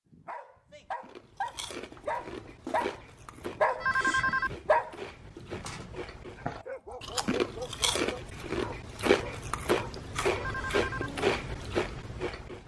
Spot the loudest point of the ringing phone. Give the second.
4 s.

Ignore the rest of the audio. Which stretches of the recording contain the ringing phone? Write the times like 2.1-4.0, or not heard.
3.8-4.5, 10.3-11.1.